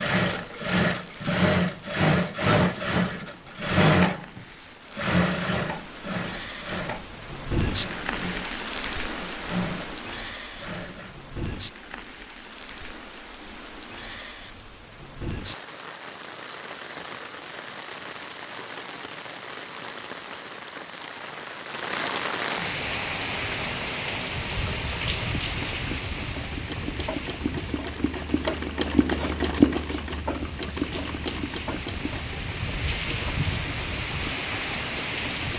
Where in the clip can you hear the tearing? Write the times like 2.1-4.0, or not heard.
4.3-4.8.